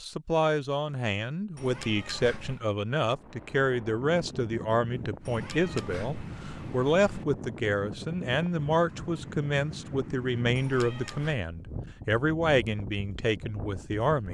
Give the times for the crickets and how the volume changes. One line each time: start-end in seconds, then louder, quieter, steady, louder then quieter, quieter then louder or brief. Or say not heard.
not heard.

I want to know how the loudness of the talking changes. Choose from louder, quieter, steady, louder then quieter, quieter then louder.
steady.